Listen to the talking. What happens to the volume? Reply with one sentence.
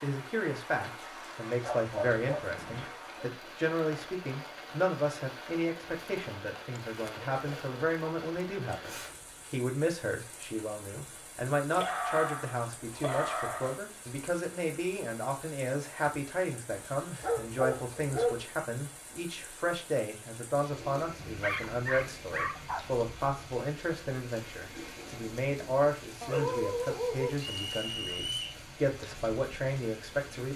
The loudness of the talking stays about the same.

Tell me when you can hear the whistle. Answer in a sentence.
The whistle can be heard from 27.4 to 28.6 s.